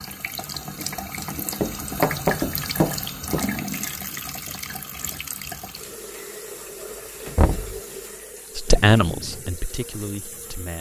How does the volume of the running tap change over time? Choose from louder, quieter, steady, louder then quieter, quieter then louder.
quieter.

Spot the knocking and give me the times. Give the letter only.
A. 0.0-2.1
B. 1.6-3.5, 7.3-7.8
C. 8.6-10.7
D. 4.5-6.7
B.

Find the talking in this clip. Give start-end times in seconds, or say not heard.
8.6-10.7.